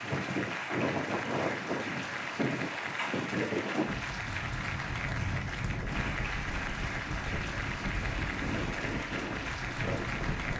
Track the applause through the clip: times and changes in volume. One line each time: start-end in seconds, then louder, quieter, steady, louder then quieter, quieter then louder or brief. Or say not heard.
0.0-10.5 steady.